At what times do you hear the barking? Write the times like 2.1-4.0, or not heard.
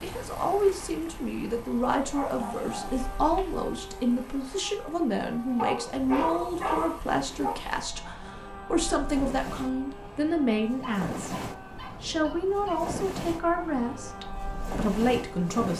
1.9-3.5, 5.5-7.5, 10.8-12.8.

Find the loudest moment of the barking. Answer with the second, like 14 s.
6 s.